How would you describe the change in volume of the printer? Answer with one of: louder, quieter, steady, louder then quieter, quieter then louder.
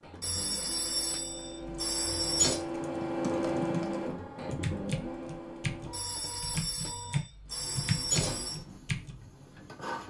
louder then quieter.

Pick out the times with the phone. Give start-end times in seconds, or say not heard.
0.2-2.6, 5.9-8.6.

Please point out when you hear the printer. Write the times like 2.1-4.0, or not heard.
0.0-10.0.